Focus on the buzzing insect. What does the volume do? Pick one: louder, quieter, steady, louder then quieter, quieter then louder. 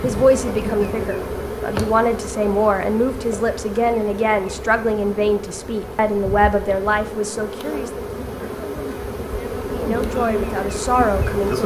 quieter then louder.